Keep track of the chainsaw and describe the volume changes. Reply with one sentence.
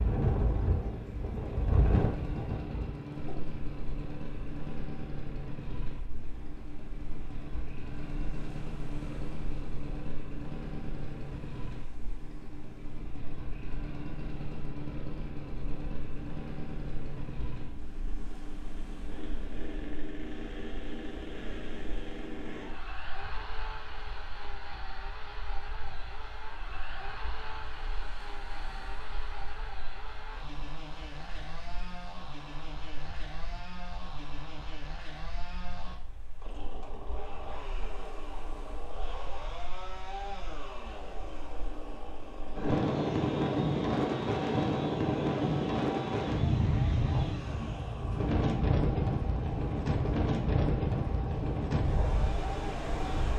The volume of the chainsaw stays about the same.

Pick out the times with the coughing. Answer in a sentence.
You can't hear the coughing here.